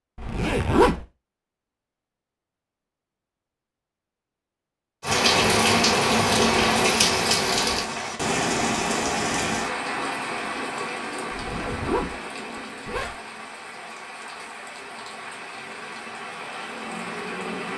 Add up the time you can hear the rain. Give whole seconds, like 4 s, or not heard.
13 s.